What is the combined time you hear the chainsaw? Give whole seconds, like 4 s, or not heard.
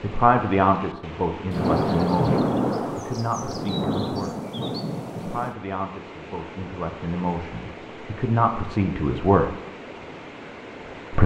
not heard.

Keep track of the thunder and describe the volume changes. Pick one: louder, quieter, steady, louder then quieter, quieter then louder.
quieter.